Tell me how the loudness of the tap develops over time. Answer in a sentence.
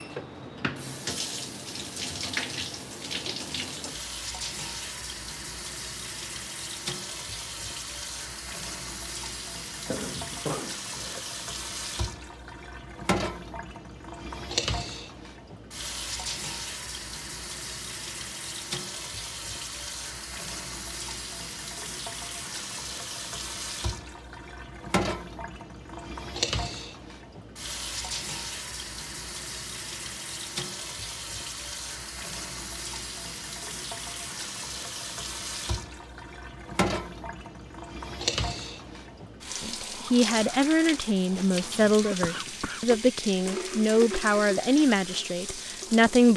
The volume of the tap stays about the same.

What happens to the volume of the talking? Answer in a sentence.
The volume of the talking stays about the same.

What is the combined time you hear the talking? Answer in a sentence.
You can hear the talking for 7 seconds altogether.